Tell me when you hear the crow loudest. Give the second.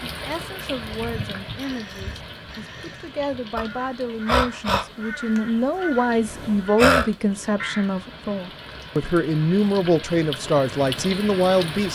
7 s.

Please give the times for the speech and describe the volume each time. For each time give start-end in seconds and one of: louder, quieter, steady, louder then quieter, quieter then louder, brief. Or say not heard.
0.0-11.9 louder.